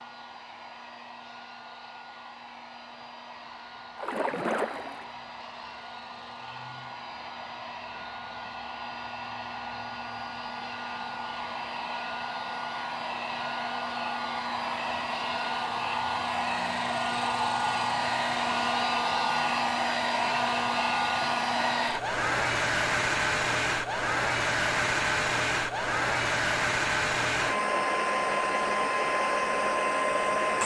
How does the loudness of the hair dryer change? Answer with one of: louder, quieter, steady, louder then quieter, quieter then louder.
louder.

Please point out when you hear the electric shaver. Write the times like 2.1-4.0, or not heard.
not heard.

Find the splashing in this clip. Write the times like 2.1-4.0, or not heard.
4.0-5.2.